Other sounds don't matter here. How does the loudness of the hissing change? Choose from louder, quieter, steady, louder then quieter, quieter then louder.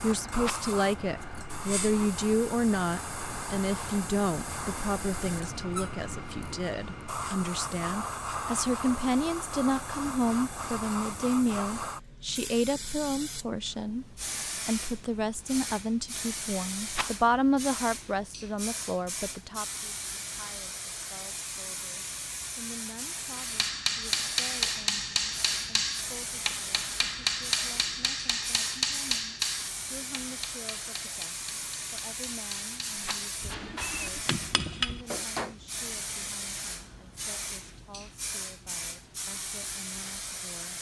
steady.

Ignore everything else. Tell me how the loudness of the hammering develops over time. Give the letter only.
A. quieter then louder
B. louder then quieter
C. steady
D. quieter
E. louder
A.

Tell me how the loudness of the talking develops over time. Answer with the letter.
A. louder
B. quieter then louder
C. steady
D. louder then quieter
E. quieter
E.